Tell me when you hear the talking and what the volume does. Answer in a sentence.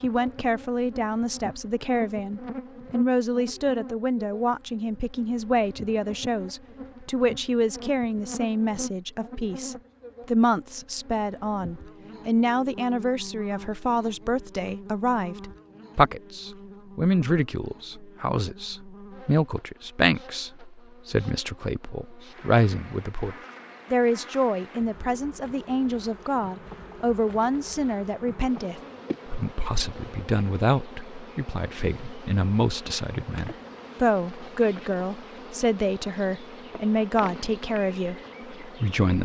You can hear the talking from 0.0 to 39.2 s, at a steady volume.